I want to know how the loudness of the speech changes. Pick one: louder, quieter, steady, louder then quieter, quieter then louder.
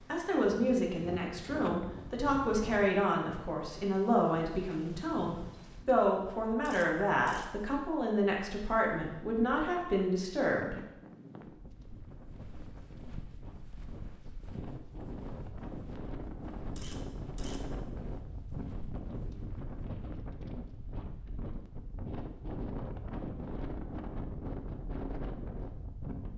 steady.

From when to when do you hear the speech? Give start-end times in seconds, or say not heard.
0.1-10.8.